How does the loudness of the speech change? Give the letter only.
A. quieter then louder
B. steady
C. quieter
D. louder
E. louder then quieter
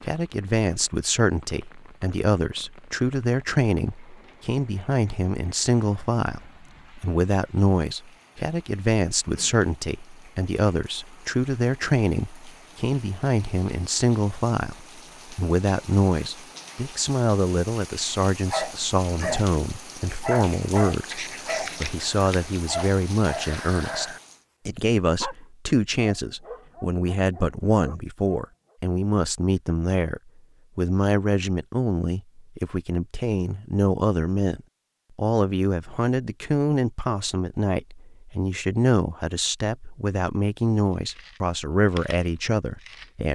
B.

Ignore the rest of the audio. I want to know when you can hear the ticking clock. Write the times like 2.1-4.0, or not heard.
not heard.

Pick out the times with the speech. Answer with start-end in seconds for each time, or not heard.
0.0-43.3.